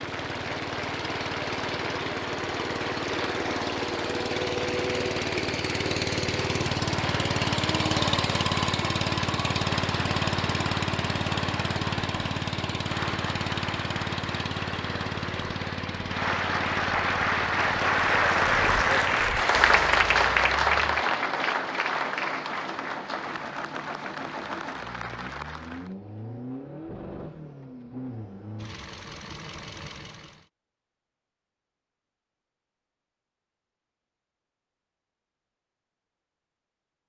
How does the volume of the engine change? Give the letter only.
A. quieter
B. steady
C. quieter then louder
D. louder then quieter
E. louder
A.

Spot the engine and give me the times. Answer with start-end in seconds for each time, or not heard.
0.0-30.4.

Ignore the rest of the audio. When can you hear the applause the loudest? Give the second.
20 s.